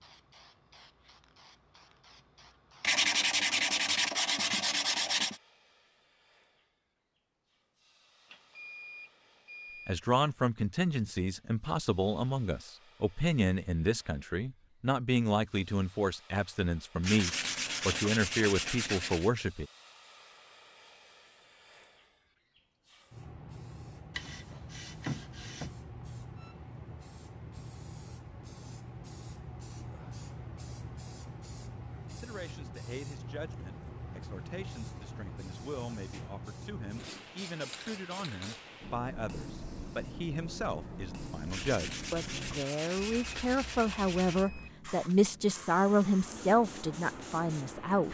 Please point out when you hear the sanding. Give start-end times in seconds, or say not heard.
2.8-5.4, 17.0-19.3, 24.1-25.7, 41.5-44.5.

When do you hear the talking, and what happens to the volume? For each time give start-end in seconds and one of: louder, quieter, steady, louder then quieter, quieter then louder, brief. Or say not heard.
9.8-19.6 steady
32.1-48.0 louder.